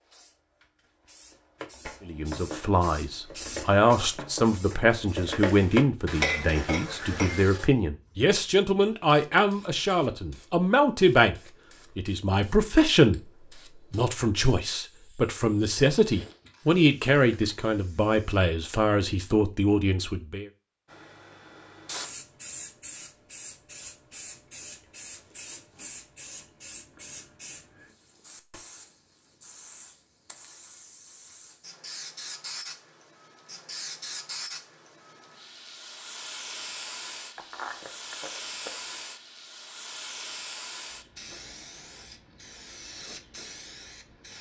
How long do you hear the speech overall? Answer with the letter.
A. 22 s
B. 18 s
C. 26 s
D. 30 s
B.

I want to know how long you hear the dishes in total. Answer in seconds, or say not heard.
6 s.